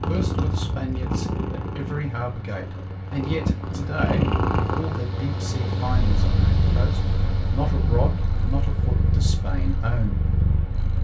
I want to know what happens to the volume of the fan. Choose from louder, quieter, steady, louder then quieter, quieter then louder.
louder then quieter.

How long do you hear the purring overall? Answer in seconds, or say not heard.
11 s.